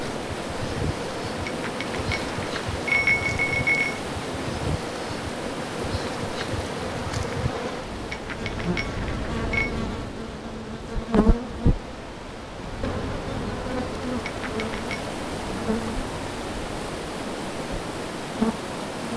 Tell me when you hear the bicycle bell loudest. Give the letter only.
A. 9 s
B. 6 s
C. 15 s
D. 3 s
D.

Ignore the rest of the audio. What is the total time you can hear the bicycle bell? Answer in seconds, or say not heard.
5 s.